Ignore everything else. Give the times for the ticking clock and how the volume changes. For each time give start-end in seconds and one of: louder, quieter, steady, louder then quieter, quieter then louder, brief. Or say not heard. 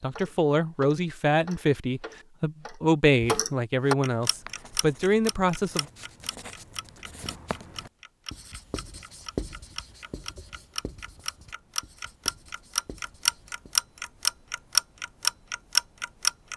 0.0-16.5 quieter then louder.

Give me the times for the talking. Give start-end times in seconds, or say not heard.
0.0-5.8.